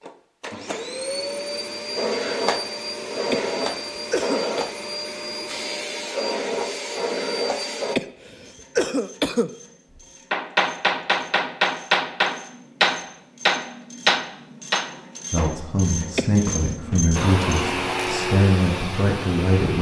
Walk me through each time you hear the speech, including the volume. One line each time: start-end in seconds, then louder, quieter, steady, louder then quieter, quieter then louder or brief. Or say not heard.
15.3-19.7 steady.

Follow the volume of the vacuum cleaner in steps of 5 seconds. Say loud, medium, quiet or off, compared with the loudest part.
loud, loud, off, loud.